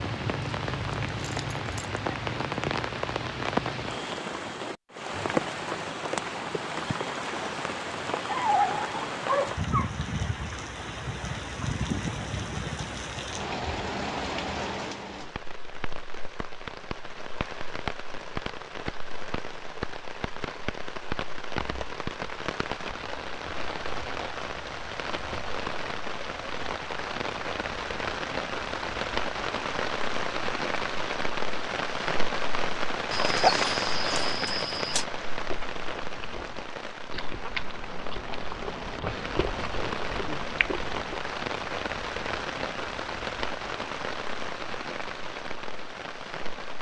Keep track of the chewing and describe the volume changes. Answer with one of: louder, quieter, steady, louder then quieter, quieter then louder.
louder.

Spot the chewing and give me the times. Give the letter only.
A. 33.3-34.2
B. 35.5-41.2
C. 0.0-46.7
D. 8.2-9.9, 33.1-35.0
B.